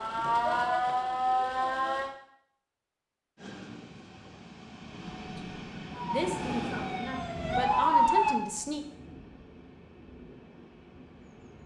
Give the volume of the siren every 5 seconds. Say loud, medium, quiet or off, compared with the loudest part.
loud, loud, off.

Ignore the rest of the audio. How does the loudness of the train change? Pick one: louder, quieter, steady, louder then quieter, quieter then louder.
louder then quieter.